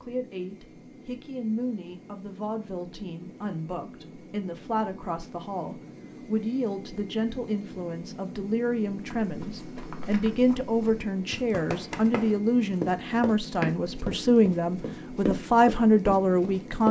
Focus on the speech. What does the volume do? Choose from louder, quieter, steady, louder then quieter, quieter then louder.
louder.